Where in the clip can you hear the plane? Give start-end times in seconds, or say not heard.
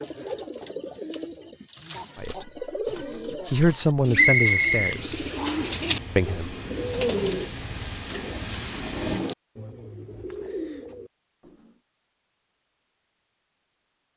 5.5-9.2.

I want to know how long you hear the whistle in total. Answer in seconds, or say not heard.
2 s.